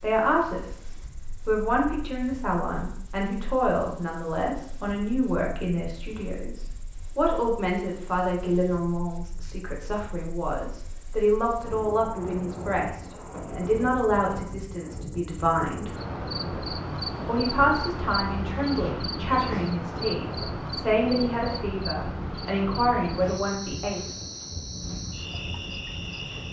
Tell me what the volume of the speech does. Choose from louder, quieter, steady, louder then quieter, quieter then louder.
steady.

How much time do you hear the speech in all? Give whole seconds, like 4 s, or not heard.
23 s.